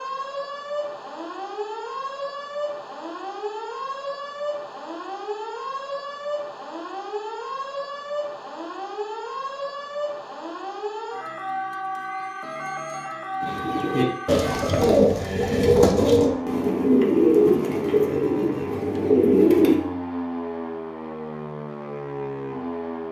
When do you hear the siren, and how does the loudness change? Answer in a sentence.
The siren can be heard from 0.0 to 23.0 s, at a steady volume.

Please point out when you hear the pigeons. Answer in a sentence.
The pigeons can be heard from 13.4 to 19.8 s.